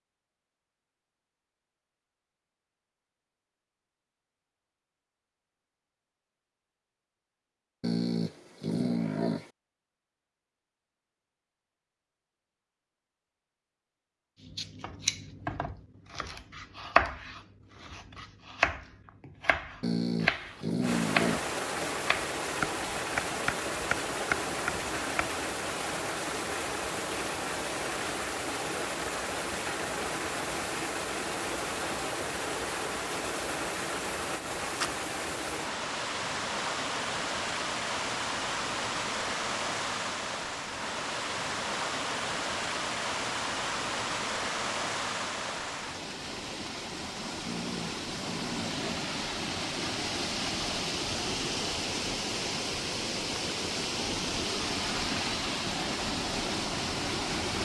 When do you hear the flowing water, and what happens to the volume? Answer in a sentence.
The flowing water can be heard from 20.8 to 57.6 s, at a steady volume.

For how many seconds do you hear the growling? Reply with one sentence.
The growling can be heard for 5 seconds in total.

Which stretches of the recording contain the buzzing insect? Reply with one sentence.
The buzzing insect can't be heard in this clip.